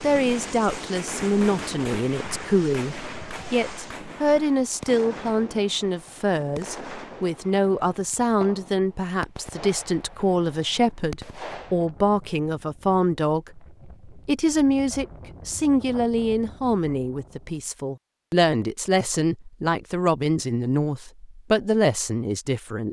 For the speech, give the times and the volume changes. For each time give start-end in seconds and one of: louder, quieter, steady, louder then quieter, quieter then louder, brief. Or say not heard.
0.0-22.8 steady.